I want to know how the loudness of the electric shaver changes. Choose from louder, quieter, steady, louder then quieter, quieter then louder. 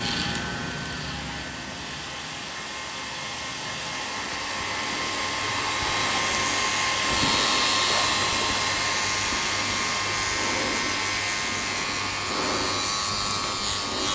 louder.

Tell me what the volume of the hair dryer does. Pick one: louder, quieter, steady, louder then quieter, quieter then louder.
louder then quieter.